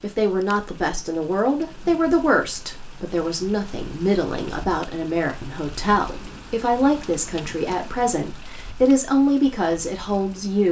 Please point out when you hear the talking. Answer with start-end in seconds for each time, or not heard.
0.0-10.6.